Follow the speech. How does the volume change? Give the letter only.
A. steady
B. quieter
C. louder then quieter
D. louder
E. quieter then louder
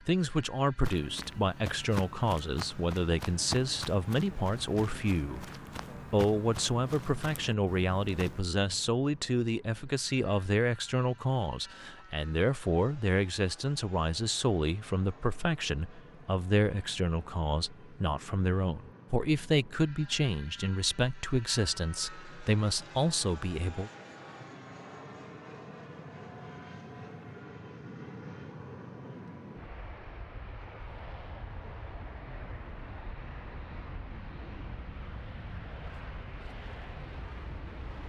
A.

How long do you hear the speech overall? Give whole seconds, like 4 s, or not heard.
23 s.